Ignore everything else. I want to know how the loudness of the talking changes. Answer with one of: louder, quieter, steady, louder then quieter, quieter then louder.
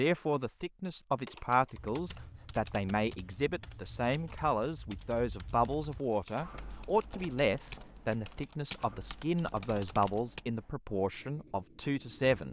steady.